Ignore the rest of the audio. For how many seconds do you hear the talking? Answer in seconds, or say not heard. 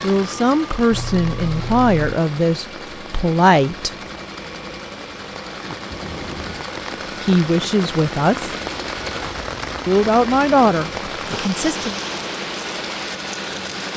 7 s.